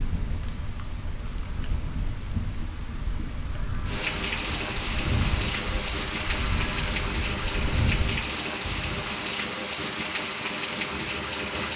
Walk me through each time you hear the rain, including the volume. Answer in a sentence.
You can hear the rain from 0.0 to 11.7 s, getting louder.